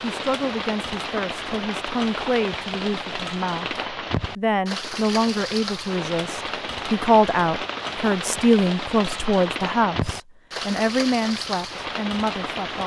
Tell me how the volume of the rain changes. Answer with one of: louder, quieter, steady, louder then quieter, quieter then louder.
steady.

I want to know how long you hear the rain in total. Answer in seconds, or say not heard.
13 s.